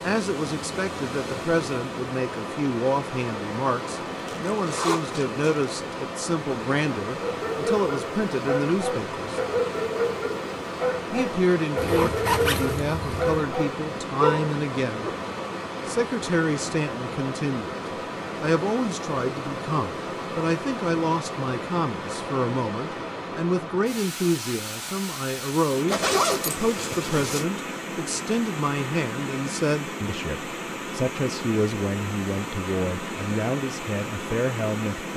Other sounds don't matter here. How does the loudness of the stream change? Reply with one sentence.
The volume of the stream stays about the same.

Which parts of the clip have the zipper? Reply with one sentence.
The zipper can be heard from 4.2 to 5.5 s, from 11.8 to 13.4 s and from 25.9 to 27.4 s.